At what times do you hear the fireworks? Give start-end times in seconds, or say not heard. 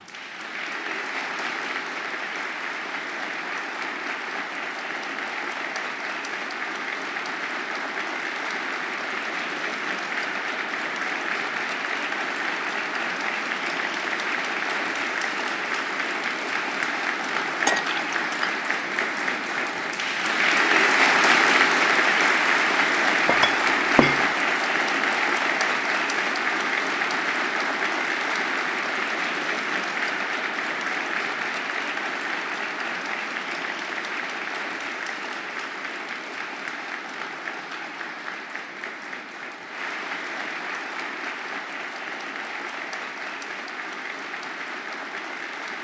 not heard.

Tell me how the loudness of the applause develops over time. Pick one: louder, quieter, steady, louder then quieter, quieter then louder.
louder then quieter.